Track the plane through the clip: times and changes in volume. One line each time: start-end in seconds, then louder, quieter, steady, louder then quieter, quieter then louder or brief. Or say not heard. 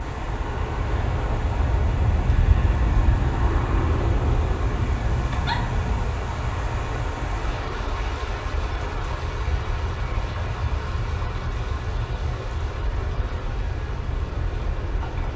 0.0-15.3 quieter.